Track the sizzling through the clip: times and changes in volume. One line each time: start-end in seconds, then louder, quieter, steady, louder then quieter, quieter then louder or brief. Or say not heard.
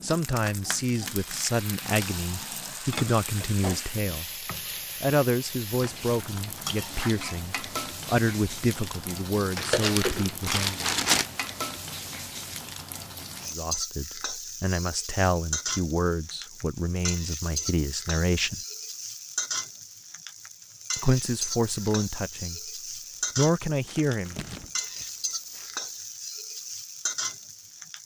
0.0-28.0 steady.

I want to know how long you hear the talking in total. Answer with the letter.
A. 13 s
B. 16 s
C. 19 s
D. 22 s
C.